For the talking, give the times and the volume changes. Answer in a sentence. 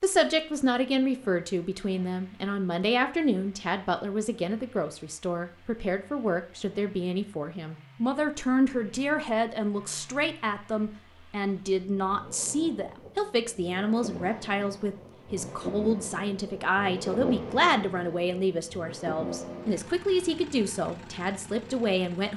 You can hear the talking from 0.0 to 22.3 s, at a steady volume.